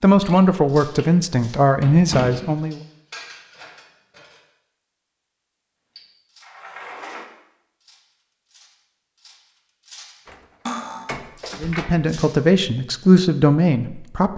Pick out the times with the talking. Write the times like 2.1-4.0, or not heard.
0.0-2.8, 11.6-14.3.